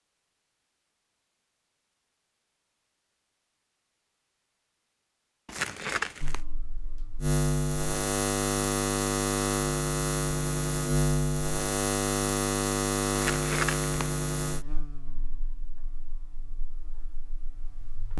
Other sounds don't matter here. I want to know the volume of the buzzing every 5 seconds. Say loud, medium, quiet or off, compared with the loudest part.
off, loud, loud, quiet.